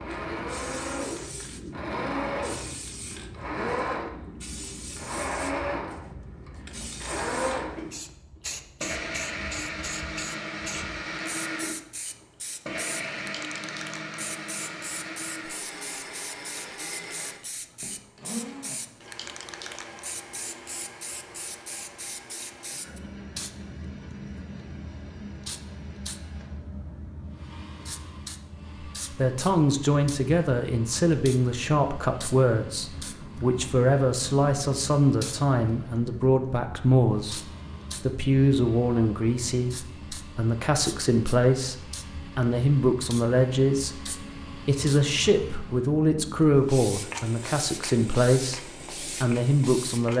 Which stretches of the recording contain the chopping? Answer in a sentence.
You can't hear the chopping here.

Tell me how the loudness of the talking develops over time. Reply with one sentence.
The volume of the talking stays about the same.